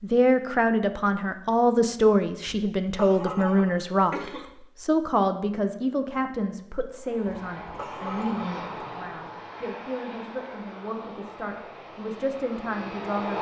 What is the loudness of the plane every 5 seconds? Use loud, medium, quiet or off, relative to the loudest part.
off, loud, loud.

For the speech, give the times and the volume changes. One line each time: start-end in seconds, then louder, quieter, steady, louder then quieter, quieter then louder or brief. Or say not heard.
0.0-13.3 quieter.